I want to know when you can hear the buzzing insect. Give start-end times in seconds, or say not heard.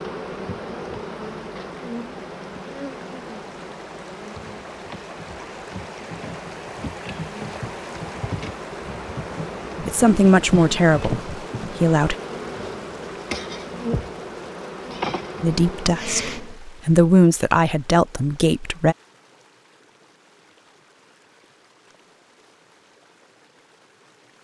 0.0-16.6.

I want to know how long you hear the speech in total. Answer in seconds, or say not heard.
6 s.